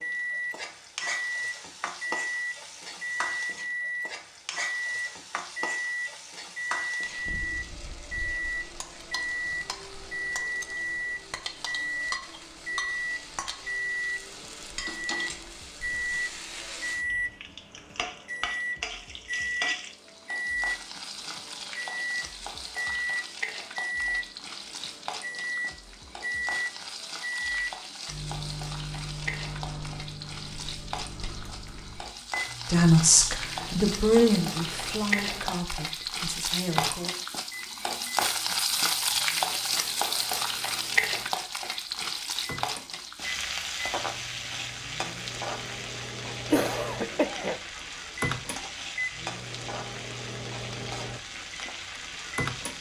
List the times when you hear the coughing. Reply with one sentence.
You can hear the coughing from 46.5 to 47.6 s.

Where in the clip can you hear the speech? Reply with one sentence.
You can hear the speech from 32.7 to 37.1 s.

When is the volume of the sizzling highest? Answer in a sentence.
The volume of the sizzling peaks at 39 seconds.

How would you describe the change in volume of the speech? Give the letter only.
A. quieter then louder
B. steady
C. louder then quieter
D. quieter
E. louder
D.